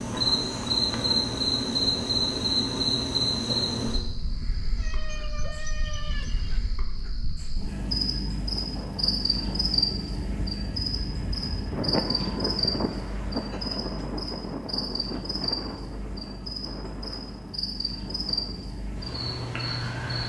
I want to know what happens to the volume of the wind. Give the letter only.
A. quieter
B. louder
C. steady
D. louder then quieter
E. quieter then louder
D.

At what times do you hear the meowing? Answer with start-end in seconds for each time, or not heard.
4.8-6.6.